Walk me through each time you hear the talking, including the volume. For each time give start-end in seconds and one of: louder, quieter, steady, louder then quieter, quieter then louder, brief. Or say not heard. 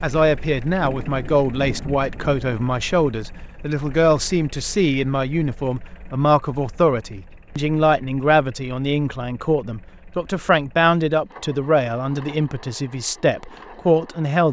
0.0-14.4 steady.